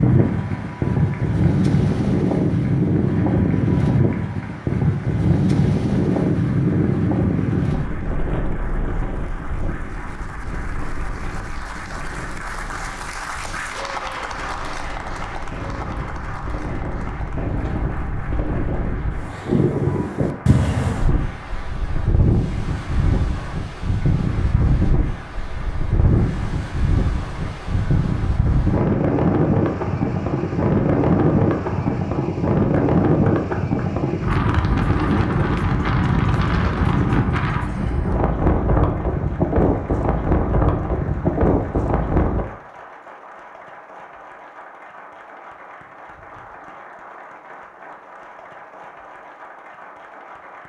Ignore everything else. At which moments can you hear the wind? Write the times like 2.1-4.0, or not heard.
0.0-42.5.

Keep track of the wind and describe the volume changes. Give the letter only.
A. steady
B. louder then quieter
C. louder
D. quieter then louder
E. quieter
D.